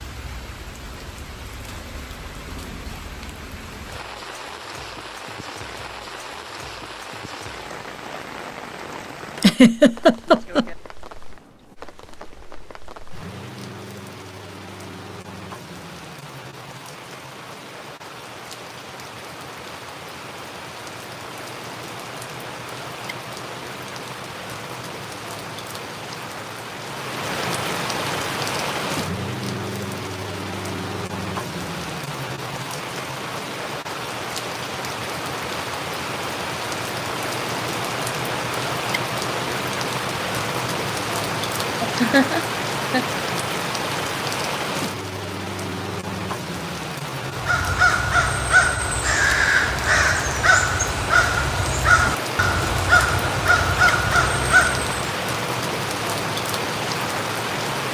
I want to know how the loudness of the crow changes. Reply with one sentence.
The loudness of the crow stays about the same.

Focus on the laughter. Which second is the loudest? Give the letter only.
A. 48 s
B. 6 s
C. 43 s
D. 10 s
D.